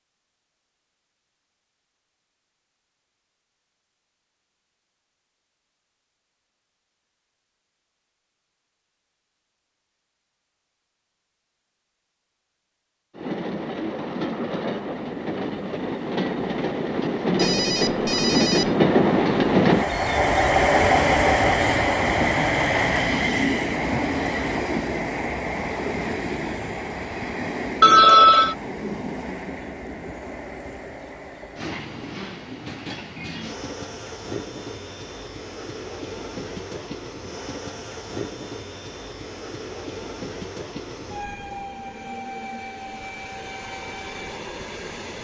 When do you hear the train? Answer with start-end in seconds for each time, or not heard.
13.1-45.1.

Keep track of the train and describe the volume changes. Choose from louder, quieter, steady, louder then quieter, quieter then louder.
quieter.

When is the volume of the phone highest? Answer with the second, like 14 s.
28 s.